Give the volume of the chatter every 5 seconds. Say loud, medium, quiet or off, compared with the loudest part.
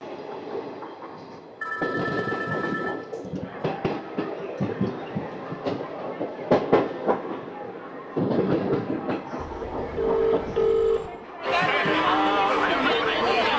quiet, quiet, loud.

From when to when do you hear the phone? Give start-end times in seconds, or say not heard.
1.6-3.1, 9.3-11.1.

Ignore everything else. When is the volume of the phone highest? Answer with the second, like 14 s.
11 s.